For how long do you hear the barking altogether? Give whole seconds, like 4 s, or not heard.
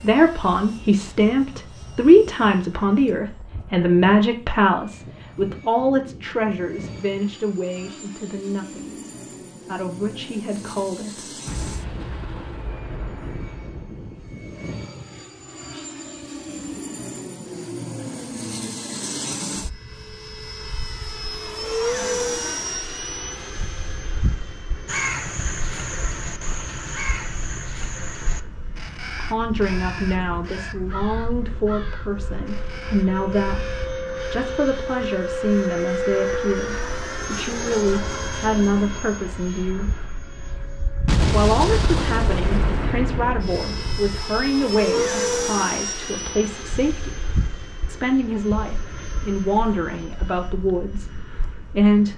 not heard.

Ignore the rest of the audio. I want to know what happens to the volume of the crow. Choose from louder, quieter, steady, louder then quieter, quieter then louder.
quieter.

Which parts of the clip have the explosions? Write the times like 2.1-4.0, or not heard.
11.4-14.6, 41.0-44.2.